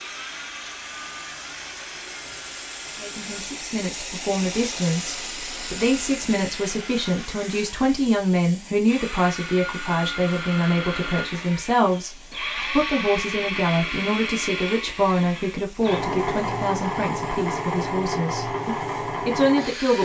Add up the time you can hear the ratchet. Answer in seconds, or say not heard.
not heard.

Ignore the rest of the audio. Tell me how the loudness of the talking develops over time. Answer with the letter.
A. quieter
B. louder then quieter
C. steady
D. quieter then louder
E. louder
C.